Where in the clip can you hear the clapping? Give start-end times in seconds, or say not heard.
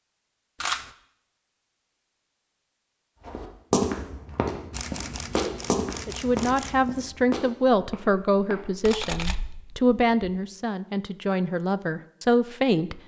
not heard.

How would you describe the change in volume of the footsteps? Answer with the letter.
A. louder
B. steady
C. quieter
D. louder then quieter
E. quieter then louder
C.